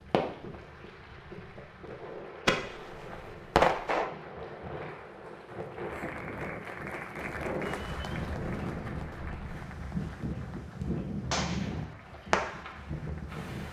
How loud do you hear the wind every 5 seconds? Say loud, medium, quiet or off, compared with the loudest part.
medium, loud, loud.